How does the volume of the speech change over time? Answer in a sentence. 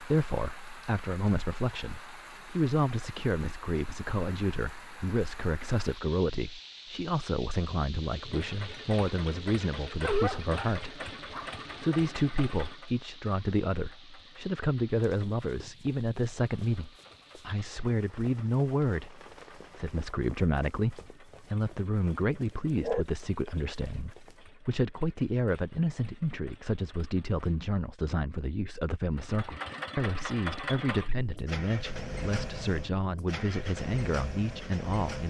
The volume of the speech stays about the same.